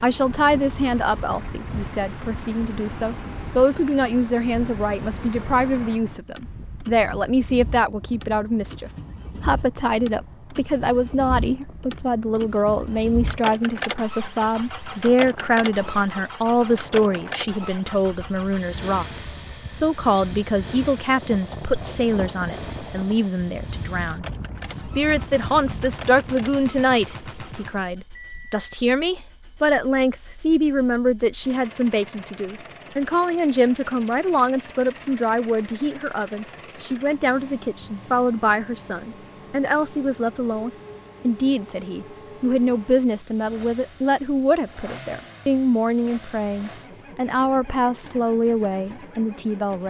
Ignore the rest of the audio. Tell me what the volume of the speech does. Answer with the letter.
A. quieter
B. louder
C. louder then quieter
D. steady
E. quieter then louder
D.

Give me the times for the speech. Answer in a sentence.
The speech can be heard from 0.0 to 49.8 s.